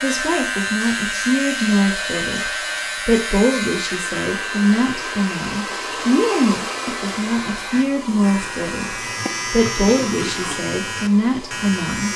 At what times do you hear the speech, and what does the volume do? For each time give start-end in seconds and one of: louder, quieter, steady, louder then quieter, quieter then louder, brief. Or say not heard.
0.0-12.1 steady.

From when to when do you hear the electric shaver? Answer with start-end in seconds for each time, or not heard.
0.0-12.1.